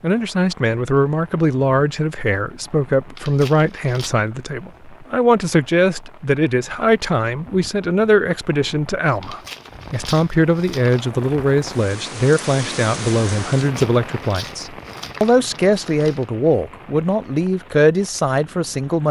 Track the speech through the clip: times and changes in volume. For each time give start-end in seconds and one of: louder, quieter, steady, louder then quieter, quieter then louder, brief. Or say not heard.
0.0-19.0 steady.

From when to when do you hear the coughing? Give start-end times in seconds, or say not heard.
not heard.